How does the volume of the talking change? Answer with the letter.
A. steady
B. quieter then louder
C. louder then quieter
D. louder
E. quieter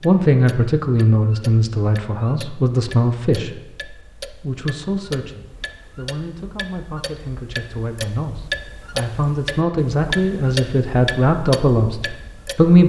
B.